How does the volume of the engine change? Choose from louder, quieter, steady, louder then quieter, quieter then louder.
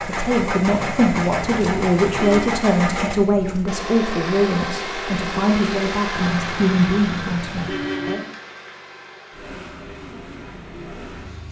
quieter.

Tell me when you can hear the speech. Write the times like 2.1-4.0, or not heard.
0.0-8.2.